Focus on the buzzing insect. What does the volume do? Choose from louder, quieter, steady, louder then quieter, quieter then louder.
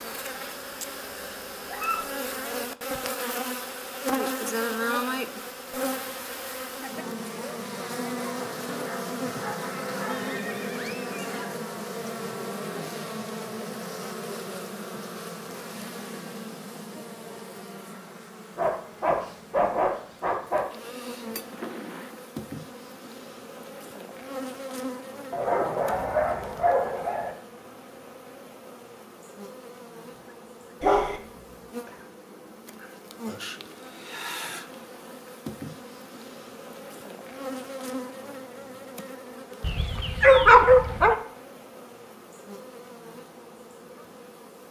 quieter.